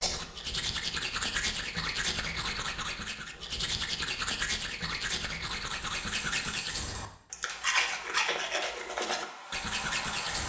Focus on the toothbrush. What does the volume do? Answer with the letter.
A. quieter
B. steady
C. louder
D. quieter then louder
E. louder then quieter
B.